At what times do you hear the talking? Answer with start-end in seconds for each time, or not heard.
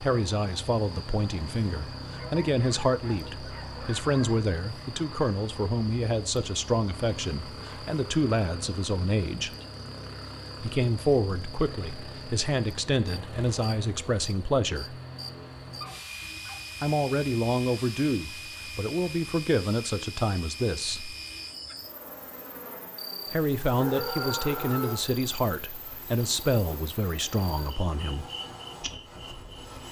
0.0-9.5, 10.6-14.9, 16.8-21.1, 23.3-28.2.